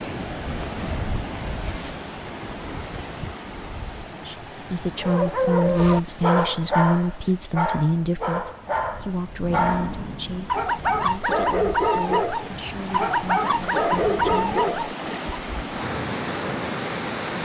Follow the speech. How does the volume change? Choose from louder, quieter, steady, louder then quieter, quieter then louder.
quieter.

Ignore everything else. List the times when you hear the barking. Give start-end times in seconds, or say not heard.
5.0-15.3.